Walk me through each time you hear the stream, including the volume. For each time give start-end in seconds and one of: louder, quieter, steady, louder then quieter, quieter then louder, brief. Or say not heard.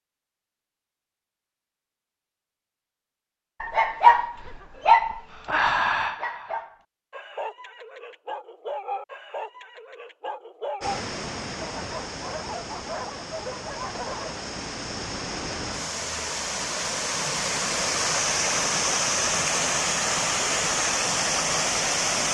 10.8-22.2 louder.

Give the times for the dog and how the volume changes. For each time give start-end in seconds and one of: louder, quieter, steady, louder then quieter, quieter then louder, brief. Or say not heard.
3.6-14.4 quieter.